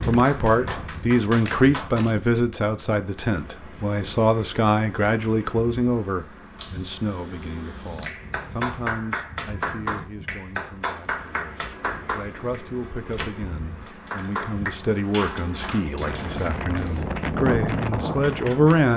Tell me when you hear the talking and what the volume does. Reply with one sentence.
The talking can be heard from 0.0 to 18.9 s, getting quieter then louder.